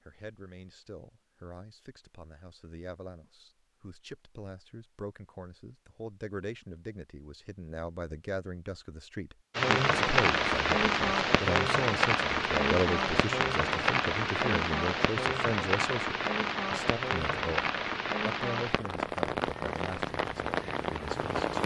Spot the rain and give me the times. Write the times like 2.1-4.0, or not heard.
9.6-21.6.